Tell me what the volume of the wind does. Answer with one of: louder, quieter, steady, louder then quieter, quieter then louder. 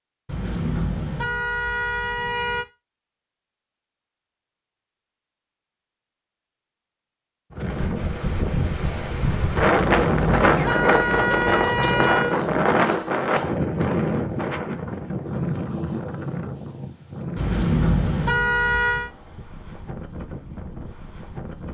quieter.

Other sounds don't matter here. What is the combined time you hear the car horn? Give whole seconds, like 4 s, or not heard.
7 s.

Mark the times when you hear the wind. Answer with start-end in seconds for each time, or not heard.
7.5-21.6.